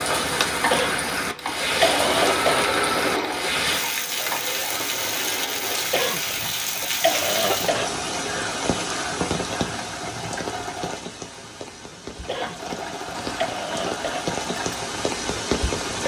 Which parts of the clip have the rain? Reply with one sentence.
You can hear the rain from 0.0 to 16.0 s.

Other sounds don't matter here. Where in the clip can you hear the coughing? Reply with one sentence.
The coughing can be heard from 0.7 to 2.6 s, from 5.9 to 7.8 s and from 12.2 to 14.2 s.